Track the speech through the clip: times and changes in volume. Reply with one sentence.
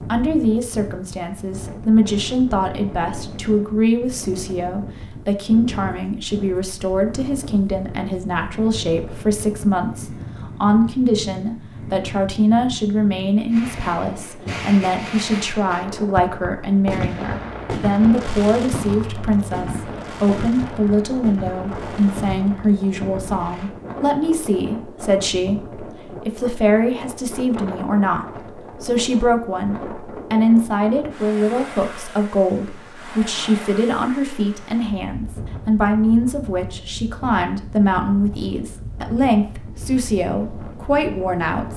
You can hear the speech from 0.0 to 41.7 s, at a steady volume.